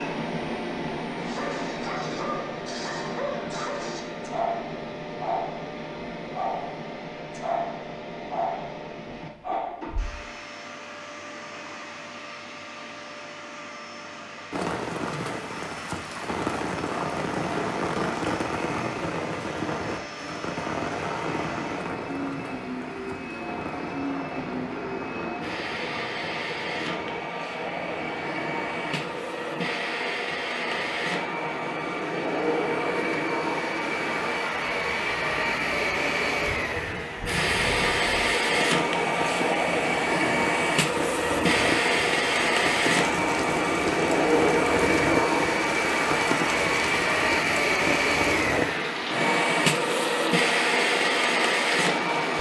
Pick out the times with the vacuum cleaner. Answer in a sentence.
The vacuum cleaner can be heard from 0.0 to 52.3 s.